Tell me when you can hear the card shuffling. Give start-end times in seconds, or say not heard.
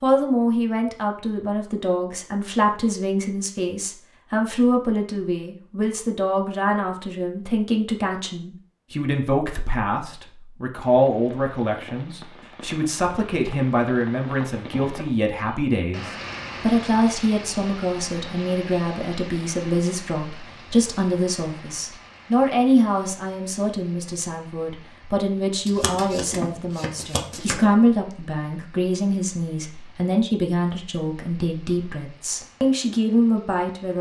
25.6-27.6.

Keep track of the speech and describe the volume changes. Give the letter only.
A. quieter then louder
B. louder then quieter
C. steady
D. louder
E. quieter
C.